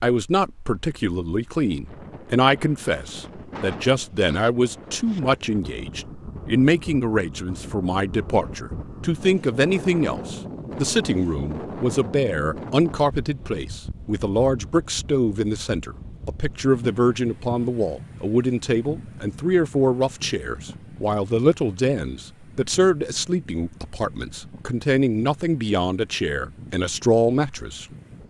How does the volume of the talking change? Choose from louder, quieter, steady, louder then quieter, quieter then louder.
steady.